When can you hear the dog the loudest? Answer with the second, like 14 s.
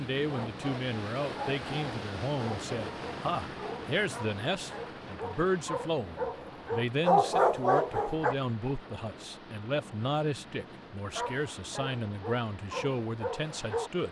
7 s.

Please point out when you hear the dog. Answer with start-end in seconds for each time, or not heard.
0.2-8.3, 11.2-13.9.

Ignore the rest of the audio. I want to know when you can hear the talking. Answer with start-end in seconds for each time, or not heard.
0.0-14.0.